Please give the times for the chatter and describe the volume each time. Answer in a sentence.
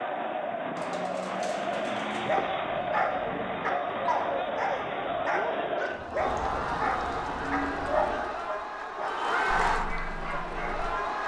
The chatter can be heard from 0.0 to 11.2 s, at a steady volume.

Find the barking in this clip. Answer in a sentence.
You can hear the barking from 2.2 to 10.9 s.